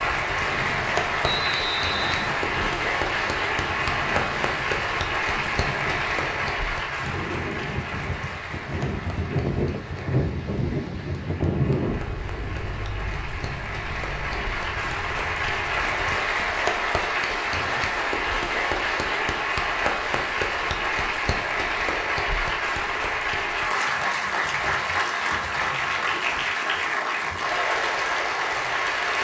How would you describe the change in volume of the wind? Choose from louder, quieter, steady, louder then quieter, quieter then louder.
louder then quieter.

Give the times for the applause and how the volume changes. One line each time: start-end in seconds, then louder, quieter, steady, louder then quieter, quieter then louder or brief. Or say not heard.
0.0-29.1 quieter then louder.